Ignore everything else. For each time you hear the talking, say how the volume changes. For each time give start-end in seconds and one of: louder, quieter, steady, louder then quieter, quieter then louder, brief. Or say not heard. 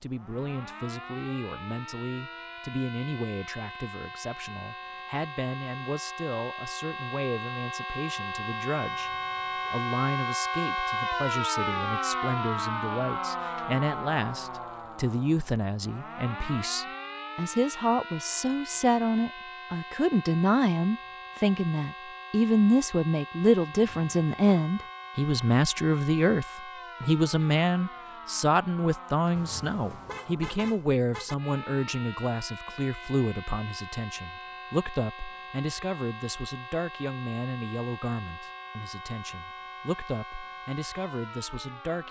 0.0-42.0 louder then quieter.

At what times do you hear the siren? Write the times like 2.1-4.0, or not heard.
0.0-42.0.